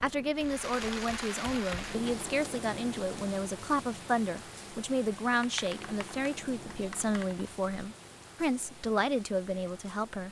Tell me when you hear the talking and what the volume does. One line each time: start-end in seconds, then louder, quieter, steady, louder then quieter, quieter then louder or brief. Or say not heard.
0.0-10.2 steady.